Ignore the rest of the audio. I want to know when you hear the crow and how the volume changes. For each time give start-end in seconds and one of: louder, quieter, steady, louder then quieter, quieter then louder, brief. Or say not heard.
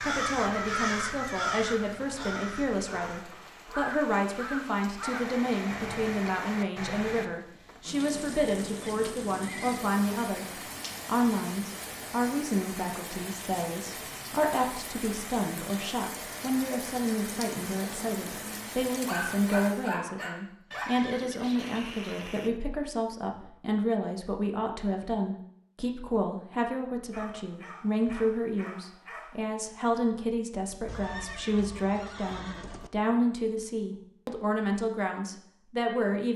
0.0-6.3 quieter then louder.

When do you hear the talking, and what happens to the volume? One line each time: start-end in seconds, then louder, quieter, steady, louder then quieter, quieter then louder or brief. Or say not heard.
0.0-36.3 steady.